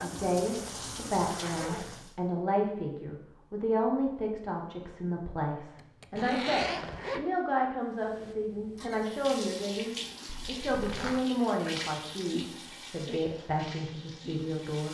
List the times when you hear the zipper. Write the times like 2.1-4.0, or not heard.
0.6-2.0, 5.8-7.2, 10.2-11.2.